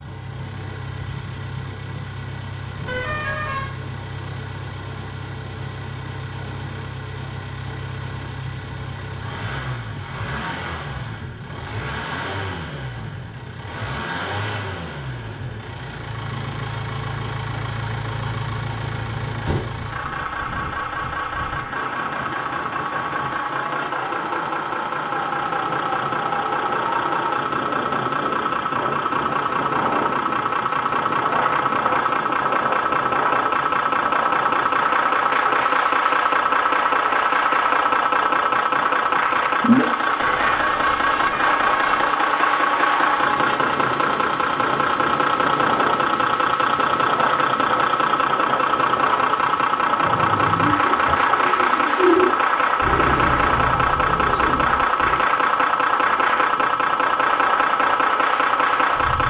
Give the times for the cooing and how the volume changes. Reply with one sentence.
You can hear the cooing from 50.0 to 55.2 s, getting louder then quieter.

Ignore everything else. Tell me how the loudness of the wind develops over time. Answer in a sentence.
The loudness of the wind goes up.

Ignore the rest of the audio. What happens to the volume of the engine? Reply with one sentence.
The loudness of the engine goes up.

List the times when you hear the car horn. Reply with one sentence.
The car horn can be heard from 2.9 to 3.8 s and from 40.2 to 42.1 s.